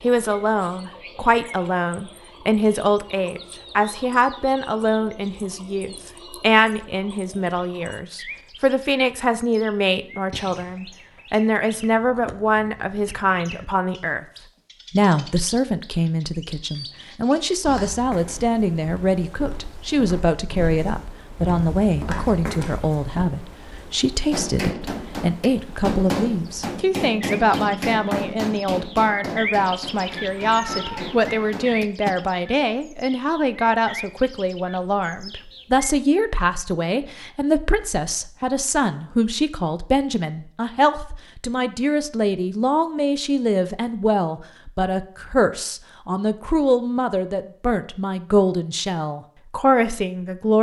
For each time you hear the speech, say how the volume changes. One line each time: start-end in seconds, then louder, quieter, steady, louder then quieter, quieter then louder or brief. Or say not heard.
0.0-14.2 steady
14.9-50.5 steady.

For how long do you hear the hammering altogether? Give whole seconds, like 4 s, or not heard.
8 s.